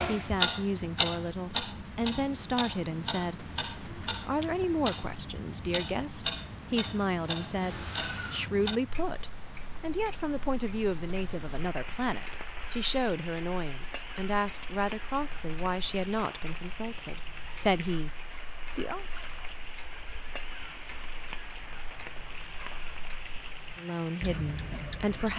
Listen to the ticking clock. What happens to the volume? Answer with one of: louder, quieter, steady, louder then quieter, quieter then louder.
quieter then louder.